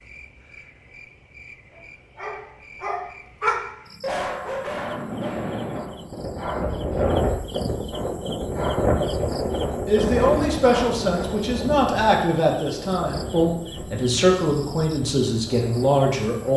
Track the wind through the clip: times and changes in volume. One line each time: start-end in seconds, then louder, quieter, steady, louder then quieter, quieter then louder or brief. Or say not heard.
4.5-16.5 quieter.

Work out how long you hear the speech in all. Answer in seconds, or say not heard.
7 s.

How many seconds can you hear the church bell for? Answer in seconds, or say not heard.
not heard.